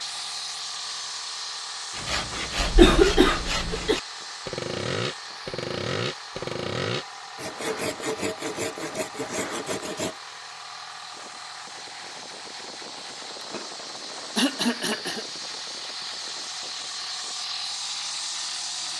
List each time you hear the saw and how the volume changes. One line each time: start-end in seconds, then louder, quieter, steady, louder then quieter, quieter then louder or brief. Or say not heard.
1.9-10.2 steady.